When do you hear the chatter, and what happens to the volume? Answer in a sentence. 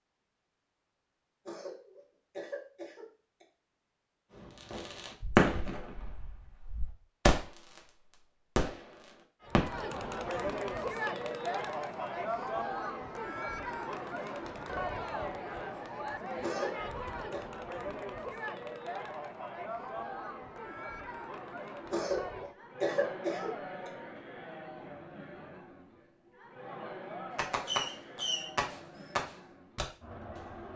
The chatter can be heard from 9.4 to 30.7 s, getting quieter.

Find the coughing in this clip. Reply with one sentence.
The coughing can be heard from 1.4 to 3.5 s, from 16.4 to 17.4 s and from 21.9 to 23.9 s.